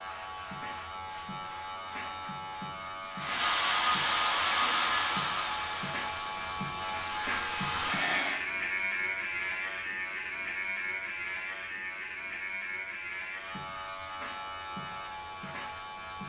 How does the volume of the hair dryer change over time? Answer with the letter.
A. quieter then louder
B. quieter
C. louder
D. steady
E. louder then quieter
A.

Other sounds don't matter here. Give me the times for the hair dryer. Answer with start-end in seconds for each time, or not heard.
3.1-8.4.